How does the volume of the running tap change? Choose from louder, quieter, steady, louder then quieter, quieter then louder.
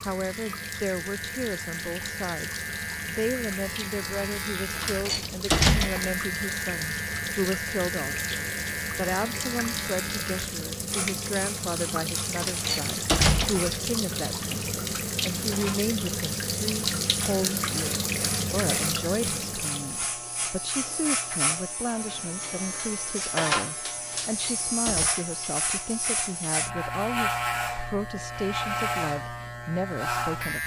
louder.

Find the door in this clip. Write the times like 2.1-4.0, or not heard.
4.8-6.2, 12.3-13.7, 24.1-25.1.